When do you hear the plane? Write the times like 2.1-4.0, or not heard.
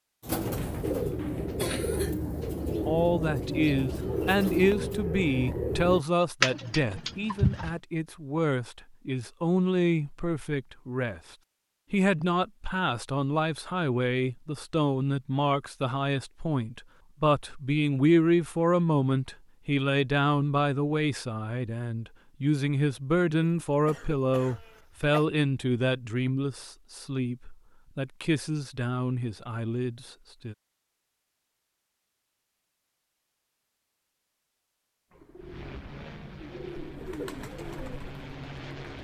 35.4-38.9.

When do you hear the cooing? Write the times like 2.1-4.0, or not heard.
0.2-7.8, 35.1-38.9.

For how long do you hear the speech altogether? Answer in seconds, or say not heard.
28 s.